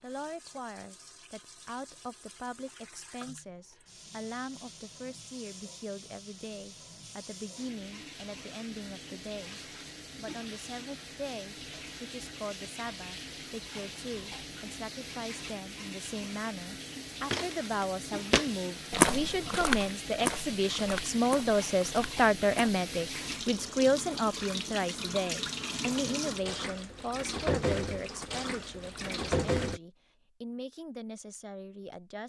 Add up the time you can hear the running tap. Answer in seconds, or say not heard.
30 s.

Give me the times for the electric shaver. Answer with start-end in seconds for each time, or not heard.
not heard.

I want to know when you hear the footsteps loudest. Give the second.
19 s.